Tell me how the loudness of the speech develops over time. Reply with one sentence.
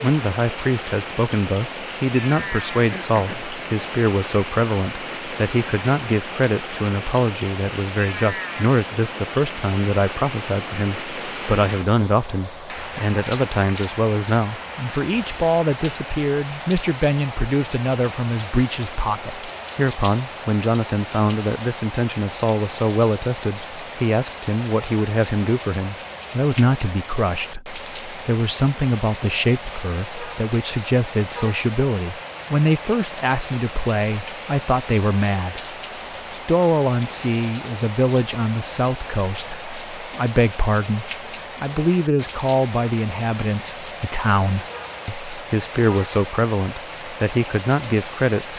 The loudness of the speech stays about the same.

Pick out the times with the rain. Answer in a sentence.
The rain can be heard from 0.0 to 48.5 s.